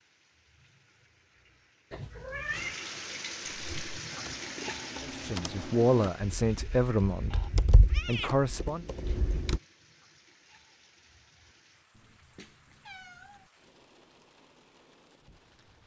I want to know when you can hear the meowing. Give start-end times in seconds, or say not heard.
1.9-2.9, 7.3-8.3, 11.9-13.5.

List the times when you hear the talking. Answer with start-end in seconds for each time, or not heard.
5.0-8.8.